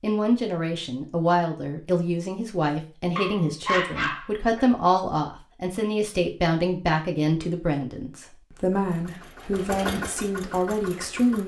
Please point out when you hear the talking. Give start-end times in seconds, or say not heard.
0.0-11.4.